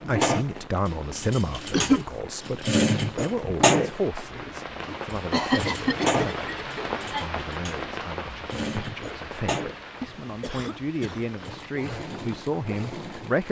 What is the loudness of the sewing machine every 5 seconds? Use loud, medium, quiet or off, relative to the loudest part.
loud, medium, quiet.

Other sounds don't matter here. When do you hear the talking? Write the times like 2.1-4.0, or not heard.
0.1-13.4.